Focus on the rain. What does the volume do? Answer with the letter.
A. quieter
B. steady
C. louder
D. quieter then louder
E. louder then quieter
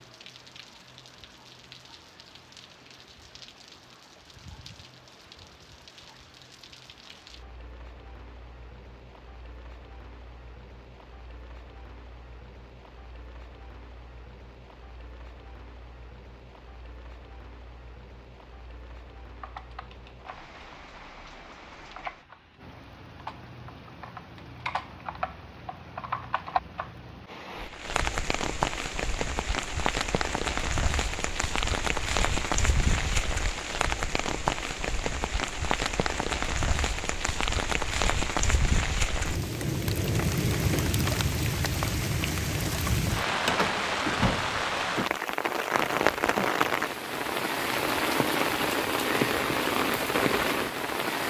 C.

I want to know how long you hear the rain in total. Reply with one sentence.
The rain can be heard for 51 seconds in total.